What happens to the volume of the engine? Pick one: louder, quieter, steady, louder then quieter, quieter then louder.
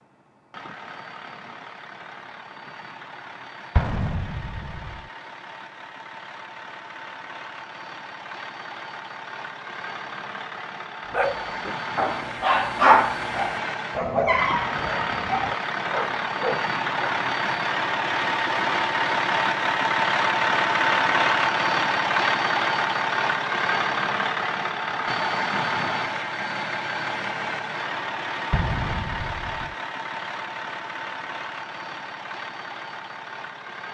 louder then quieter.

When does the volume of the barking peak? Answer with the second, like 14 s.
13 s.